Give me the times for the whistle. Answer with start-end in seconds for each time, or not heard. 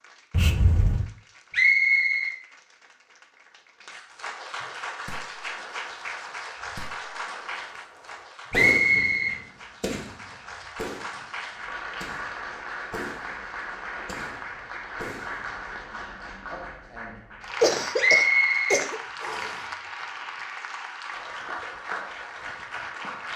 1.5-2.4, 8.5-9.3, 17.9-19.6.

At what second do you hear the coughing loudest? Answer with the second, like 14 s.
18 s.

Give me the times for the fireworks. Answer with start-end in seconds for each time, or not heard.
4.8-15.7.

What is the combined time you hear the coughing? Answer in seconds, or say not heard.
2 s.